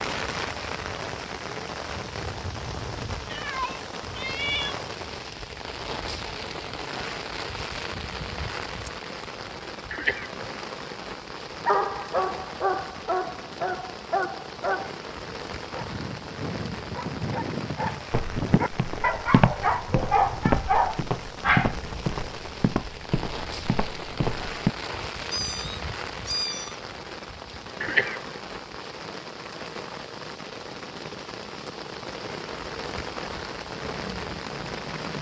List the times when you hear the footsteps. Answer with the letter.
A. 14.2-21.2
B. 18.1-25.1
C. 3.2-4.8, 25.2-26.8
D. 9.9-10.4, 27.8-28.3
B.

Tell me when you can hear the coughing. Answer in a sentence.
You can hear the coughing from 9.9 to 10.4 s and from 27.8 to 28.3 s.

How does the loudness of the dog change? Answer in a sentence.
The volume of the dog goes down, then up.